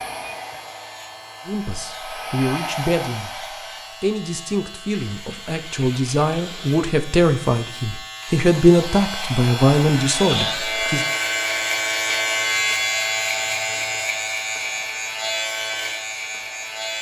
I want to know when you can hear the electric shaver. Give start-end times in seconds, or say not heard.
0.0-16.9.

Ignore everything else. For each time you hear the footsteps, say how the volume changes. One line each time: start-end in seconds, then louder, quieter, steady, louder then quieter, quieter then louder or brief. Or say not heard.
not heard.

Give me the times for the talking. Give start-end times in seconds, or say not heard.
1.4-11.1.